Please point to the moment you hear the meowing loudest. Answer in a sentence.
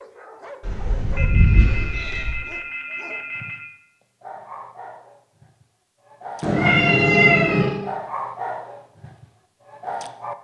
The loudest moment of the meowing is at 7 seconds.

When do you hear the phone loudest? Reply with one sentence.
The volume of the phone peaks at 7 seconds.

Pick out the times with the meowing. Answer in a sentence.
You can hear the meowing from 0.6 to 2.4 s and from 6.4 to 7.7 s.